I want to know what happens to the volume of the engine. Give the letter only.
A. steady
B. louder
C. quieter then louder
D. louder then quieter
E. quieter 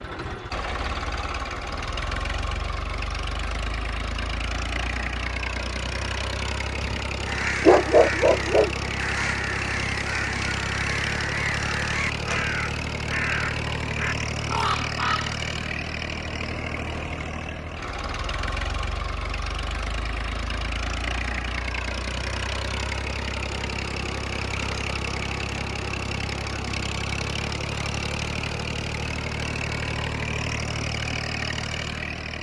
A.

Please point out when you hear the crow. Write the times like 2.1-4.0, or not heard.
7.2-15.3.